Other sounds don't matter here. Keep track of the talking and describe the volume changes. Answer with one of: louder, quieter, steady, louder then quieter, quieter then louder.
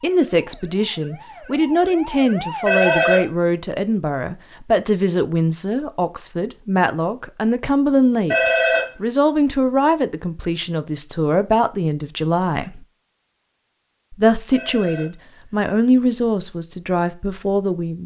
steady.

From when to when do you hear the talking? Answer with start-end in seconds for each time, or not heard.
0.0-12.8, 14.1-18.0.